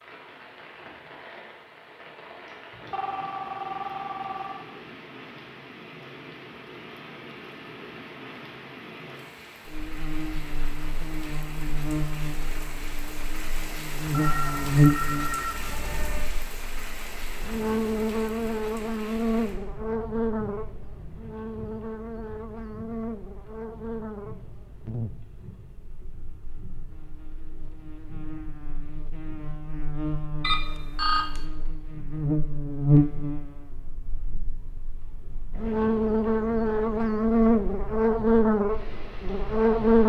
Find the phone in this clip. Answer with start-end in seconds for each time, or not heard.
2.7-4.7, 14.1-16.2, 30.4-31.4.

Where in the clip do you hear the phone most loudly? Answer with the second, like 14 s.
31 s.